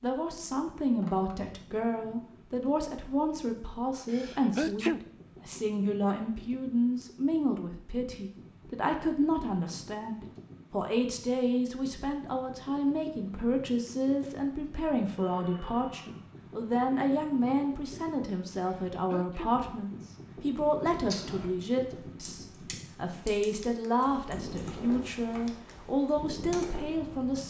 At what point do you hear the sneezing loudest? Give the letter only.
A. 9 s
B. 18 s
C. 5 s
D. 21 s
C.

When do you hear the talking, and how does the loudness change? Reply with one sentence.
The talking can be heard from 0.0 to 27.4 s, at a steady volume.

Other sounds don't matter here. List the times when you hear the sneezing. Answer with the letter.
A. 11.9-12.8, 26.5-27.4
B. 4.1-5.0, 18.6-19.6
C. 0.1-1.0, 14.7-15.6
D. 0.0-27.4
B.